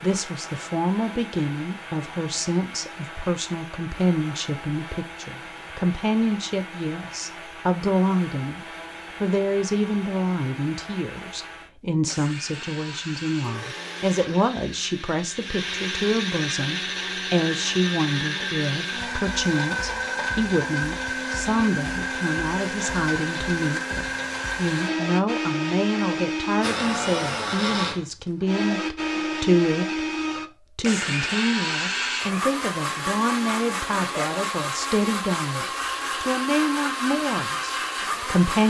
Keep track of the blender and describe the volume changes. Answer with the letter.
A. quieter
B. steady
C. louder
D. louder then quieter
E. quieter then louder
C.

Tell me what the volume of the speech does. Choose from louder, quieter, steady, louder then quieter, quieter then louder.
steady.